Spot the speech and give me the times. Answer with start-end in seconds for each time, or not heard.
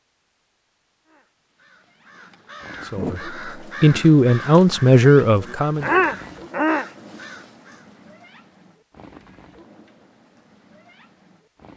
2.9-5.9.